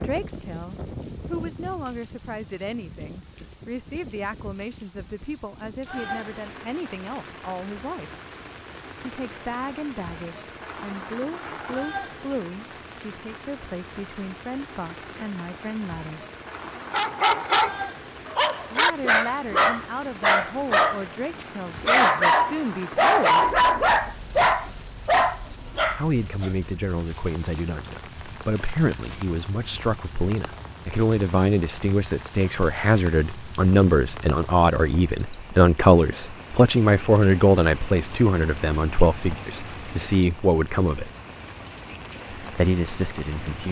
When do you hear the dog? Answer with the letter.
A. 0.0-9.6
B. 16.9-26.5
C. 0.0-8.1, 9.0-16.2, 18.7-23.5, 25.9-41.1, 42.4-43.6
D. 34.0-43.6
B.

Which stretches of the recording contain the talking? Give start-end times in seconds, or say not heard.
0.0-8.1, 9.0-16.2, 18.7-23.5, 25.9-41.1, 42.4-43.6.